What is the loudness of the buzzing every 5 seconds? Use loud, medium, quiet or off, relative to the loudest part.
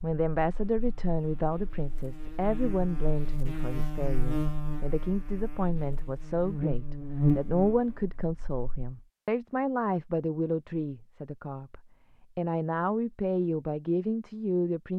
medium, loud, off.